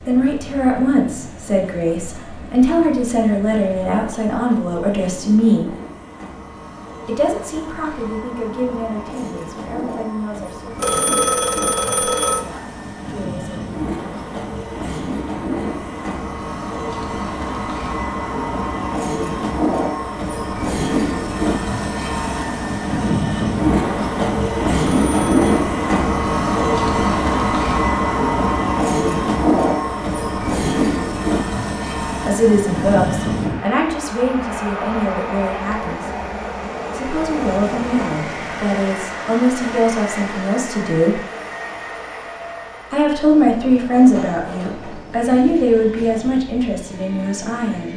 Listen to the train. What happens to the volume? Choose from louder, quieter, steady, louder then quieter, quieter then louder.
louder then quieter.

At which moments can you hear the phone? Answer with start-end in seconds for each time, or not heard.
10.8-12.4, 24.8-25.7.